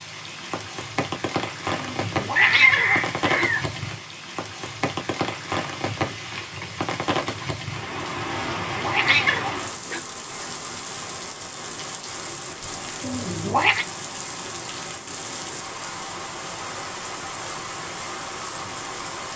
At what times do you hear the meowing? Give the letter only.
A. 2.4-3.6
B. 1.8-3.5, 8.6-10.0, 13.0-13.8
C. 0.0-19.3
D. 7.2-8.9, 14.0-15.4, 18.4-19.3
B.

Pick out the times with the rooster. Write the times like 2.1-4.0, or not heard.
2.4-3.6.